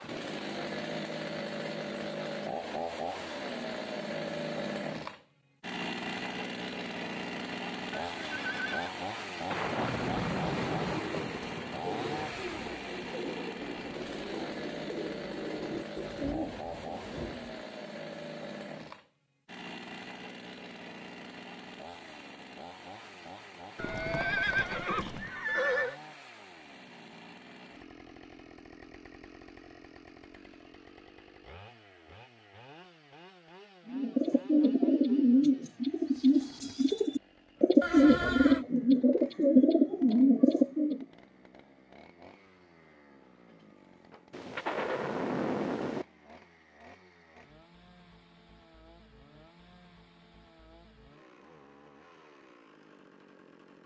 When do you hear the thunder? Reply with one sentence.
You can hear the thunder from 9.5 to 12.8 s and from 44.3 to 46.0 s.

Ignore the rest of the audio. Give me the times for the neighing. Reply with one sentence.
You can hear the neighing from 7.9 to 8.9 s, from 23.8 to 25.9 s and from 37.8 to 38.6 s.